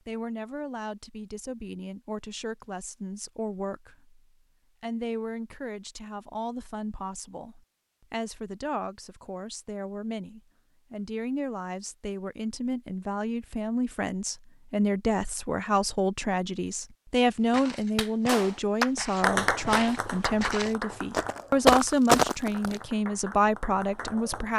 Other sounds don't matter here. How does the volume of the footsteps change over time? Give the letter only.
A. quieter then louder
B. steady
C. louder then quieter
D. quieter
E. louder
E.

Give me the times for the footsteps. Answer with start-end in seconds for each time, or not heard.
17.4-22.8.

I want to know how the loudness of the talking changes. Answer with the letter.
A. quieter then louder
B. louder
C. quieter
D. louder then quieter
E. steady
B.